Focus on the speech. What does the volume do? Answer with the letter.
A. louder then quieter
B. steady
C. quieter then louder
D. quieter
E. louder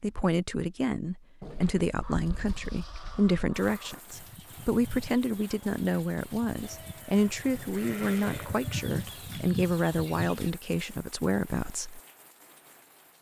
B.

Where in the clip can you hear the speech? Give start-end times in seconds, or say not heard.
0.0-12.0.